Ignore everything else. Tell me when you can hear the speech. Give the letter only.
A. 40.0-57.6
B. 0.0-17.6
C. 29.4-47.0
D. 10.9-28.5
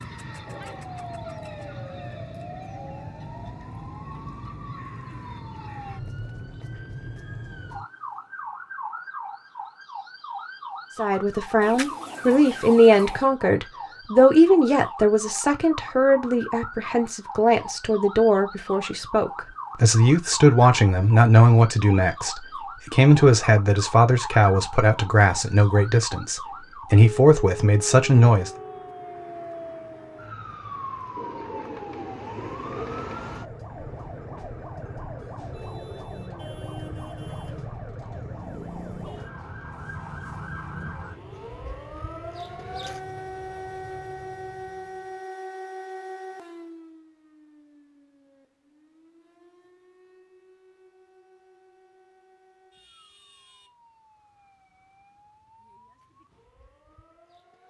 D.